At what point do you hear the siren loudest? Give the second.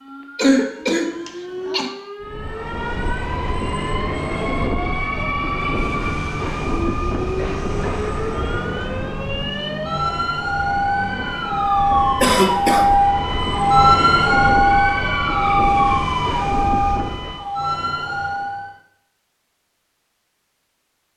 14 s.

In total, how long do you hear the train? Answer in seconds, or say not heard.
15 s.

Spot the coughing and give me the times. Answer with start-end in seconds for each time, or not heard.
0.3-1.9, 12.2-12.8.